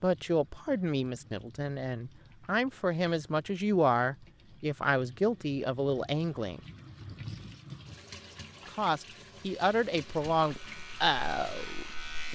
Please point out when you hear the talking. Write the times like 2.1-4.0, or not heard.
0.0-6.6, 8.7-12.3.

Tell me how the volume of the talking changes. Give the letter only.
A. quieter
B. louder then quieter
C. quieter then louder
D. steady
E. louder
D.